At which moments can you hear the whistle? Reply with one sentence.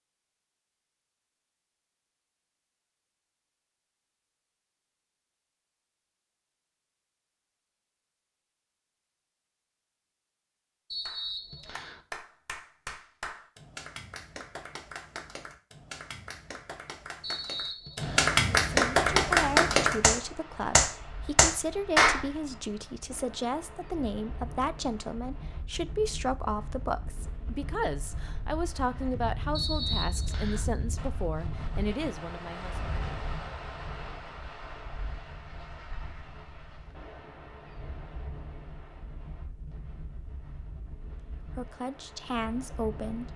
The whistle can be heard from 10.9 to 12.0 s, from 17.2 to 18.4 s and from 29.5 to 30.6 s.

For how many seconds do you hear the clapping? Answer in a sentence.
The clapping can be heard for 11 seconds in total.